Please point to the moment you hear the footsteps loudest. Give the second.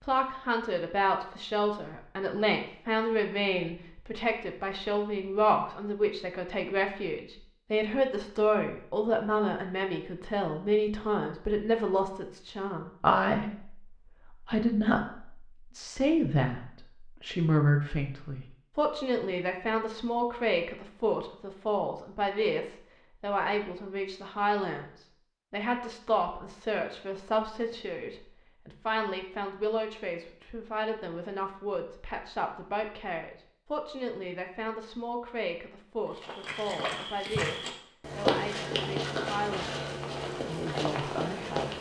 38 s.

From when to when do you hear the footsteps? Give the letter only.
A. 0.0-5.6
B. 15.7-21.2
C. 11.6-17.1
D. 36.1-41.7
D.